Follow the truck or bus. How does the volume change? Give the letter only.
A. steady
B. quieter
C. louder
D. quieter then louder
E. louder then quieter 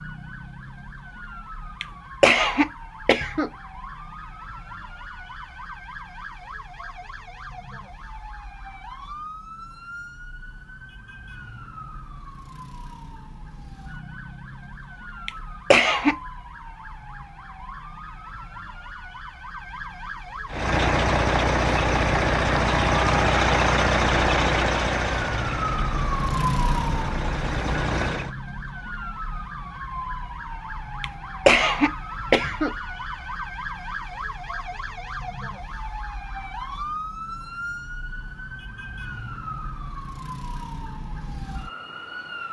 B.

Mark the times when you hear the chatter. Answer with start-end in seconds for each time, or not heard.
not heard.